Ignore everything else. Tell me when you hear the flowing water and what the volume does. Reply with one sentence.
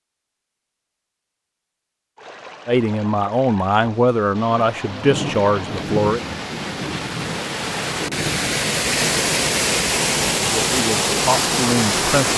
The flowing water can be heard from 2.1 to 12.3 s, getting louder.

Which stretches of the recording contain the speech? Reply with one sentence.
The speech can be heard from 2.6 to 6.2 s and from 10.6 to 12.3 s.